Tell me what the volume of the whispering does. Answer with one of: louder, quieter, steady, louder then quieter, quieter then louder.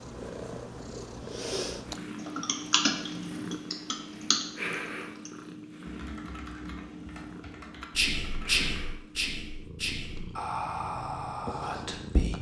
quieter.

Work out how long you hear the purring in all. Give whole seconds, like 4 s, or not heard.
12 s.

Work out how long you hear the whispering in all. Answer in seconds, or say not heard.
4 s.